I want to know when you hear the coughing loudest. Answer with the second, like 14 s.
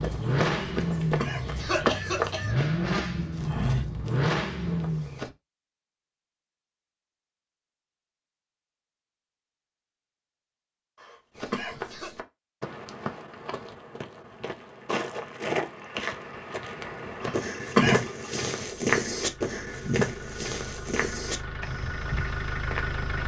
18 s.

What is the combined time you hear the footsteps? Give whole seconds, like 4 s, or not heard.
17 s.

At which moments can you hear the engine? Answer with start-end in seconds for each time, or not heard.
0.0-5.3, 15.6-23.2.